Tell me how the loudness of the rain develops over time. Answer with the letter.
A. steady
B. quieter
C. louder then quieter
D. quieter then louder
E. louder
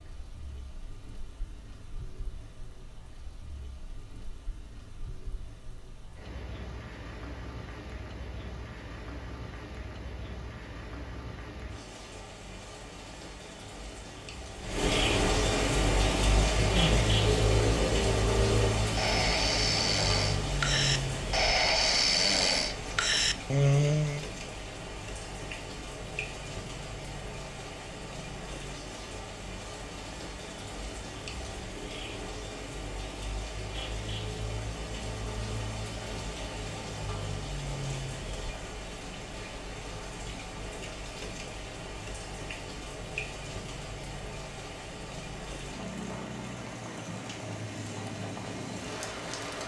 C.